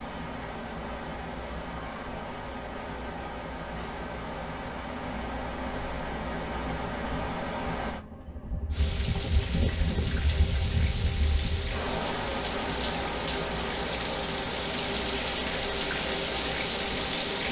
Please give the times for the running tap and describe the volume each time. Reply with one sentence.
The running tap can be heard from 8.7 to 17.4 s, getting louder.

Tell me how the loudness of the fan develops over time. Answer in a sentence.
The loudness of the fan stays about the same.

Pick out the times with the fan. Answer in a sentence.
You can hear the fan from 0.0 to 17.4 s.